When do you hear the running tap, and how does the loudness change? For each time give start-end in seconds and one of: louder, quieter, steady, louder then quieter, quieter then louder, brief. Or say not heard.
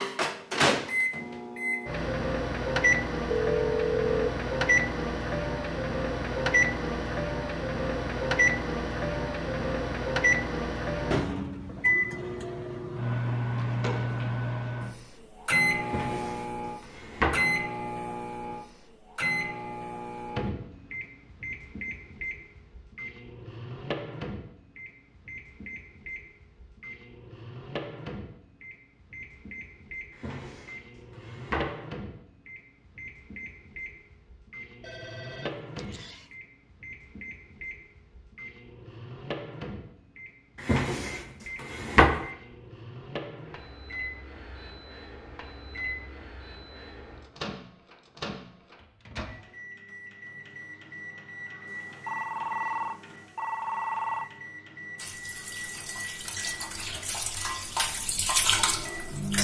55.0-59.3 louder.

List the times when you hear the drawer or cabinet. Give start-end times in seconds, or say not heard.
15.8-17.4, 30.1-31.8, 40.6-42.2.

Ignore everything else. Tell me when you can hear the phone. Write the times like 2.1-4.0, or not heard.
3.3-4.3, 34.8-36.2, 51.7-54.3.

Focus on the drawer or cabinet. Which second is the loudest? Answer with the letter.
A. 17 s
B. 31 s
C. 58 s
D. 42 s
D.